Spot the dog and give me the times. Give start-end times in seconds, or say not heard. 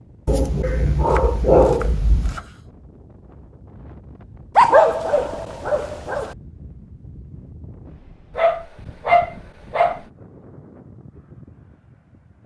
0.2-2.4, 4.5-6.3, 8.3-10.0.